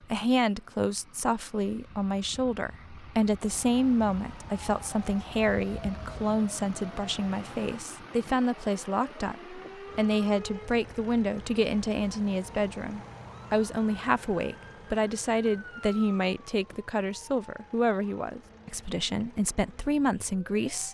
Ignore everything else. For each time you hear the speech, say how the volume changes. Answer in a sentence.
The speech can be heard from 0.1 to 20.8 s, at a steady volume.